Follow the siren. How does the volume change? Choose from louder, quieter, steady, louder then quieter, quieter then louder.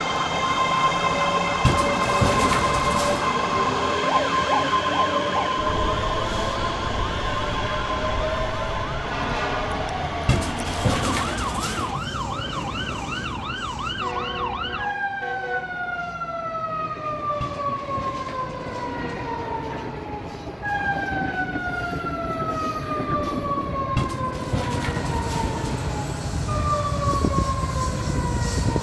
steady.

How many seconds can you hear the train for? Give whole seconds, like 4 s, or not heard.
29 s.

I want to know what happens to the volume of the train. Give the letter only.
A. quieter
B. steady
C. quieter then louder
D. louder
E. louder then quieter
C.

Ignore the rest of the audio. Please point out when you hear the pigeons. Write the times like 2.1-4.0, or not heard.
1.6-3.4, 10.2-11.9, 17.4-19.1, 23.9-25.6.